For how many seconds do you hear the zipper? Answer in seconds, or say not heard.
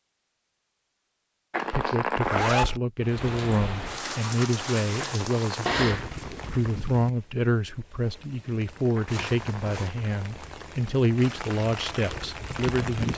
3 s.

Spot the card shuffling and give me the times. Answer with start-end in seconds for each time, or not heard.
1.5-2.5, 5.0-6.7, 8.9-10.7.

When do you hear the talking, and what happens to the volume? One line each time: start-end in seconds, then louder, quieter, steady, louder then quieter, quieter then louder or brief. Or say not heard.
1.7-13.1 steady.